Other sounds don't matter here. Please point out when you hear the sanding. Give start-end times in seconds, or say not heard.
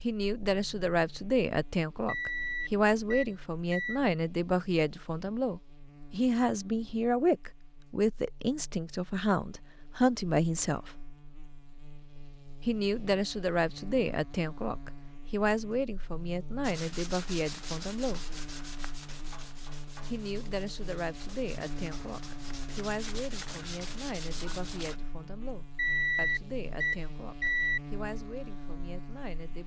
16.6-25.0.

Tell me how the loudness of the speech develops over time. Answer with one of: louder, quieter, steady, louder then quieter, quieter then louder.
quieter.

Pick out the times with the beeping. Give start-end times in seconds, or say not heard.
2.0-4.0, 25.8-27.8.